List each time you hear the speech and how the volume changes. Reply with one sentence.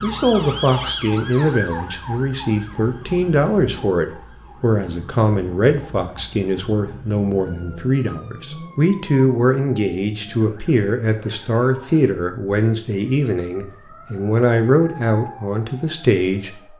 The speech can be heard from 0.0 to 16.7 s, at a steady volume.